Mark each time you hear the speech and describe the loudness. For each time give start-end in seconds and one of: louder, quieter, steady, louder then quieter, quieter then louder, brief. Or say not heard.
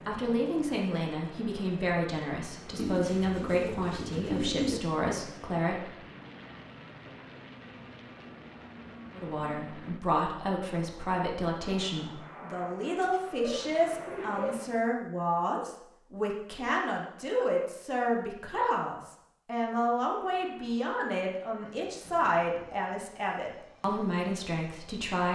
0.1-6.0 steady
9.2-25.3 steady.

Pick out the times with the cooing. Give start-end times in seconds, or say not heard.
2.8-4.8, 13.0-14.6.